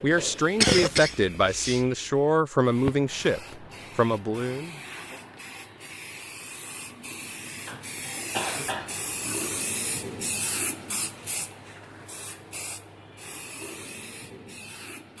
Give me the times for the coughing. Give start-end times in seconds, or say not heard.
0.6-1.8, 7.7-9.0.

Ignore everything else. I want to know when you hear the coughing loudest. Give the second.
1 s.